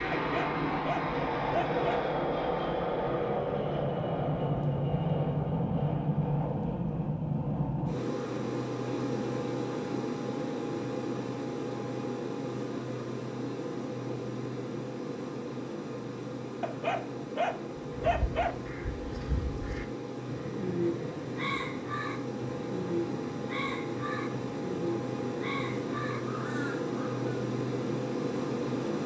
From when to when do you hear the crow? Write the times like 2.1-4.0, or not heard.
18.1-27.4.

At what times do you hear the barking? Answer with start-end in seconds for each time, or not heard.
0.1-2.0, 16.6-18.6.